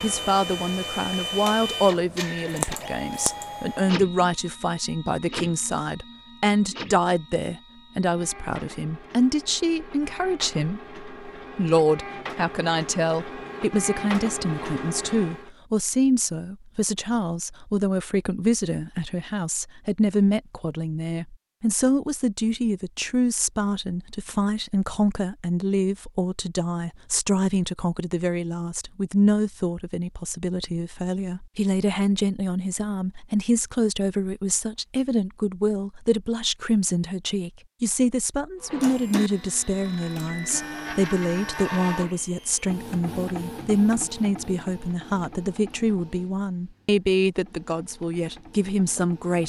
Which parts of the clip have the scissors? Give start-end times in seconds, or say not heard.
2.5-3.6.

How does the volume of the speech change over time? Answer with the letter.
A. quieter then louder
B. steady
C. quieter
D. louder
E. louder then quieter
B.